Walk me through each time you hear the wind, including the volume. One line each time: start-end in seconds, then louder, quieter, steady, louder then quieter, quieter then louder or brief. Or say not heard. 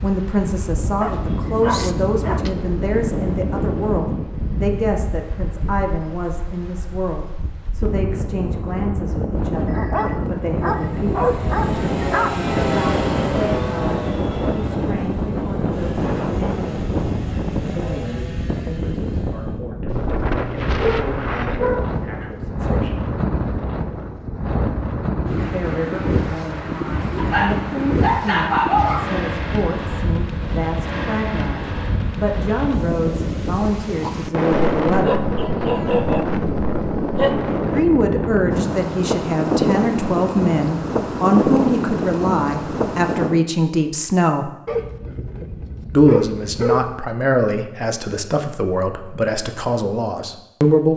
0.0-43.5 louder.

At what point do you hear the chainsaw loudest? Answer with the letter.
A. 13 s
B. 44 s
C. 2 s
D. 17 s
A.